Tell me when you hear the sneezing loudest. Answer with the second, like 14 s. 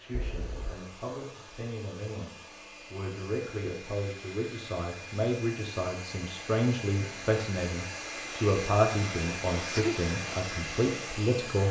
10 s.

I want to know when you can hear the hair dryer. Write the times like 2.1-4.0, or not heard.
0.0-11.6.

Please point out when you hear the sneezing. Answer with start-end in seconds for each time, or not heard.
0.1-0.8, 9.6-10.0.